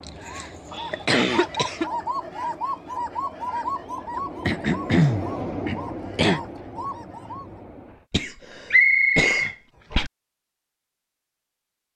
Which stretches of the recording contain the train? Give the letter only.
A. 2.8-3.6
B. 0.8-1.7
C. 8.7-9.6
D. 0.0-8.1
D.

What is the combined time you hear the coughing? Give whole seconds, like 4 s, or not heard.
6 s.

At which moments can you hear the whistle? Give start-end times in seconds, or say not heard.
8.7-9.6.